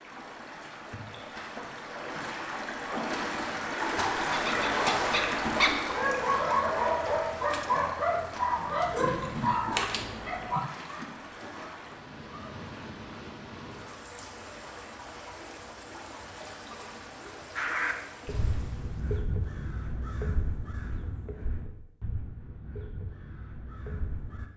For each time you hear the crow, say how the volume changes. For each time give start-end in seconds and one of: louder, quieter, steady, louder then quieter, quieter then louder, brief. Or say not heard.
17.6-24.4 quieter.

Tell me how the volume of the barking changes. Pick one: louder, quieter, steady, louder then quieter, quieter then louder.
quieter.